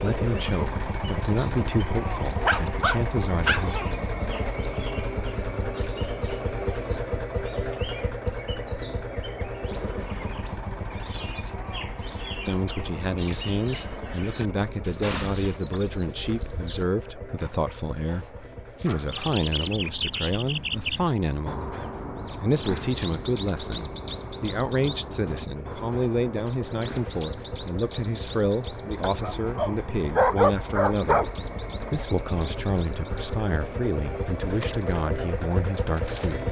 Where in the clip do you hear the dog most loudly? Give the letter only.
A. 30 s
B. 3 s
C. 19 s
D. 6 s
A.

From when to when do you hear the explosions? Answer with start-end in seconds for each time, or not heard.
15.0-15.6.